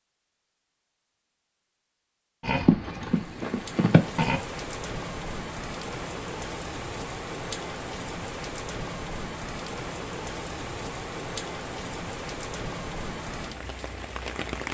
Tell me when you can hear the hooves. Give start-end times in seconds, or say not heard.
2.4-4.4.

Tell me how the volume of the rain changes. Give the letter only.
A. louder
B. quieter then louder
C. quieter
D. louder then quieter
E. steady
E.